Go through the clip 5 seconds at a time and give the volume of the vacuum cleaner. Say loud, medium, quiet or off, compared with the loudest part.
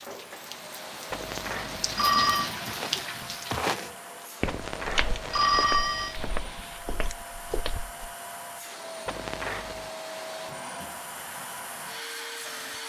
medium, loud, loud.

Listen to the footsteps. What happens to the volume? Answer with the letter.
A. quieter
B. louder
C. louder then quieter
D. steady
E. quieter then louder
A.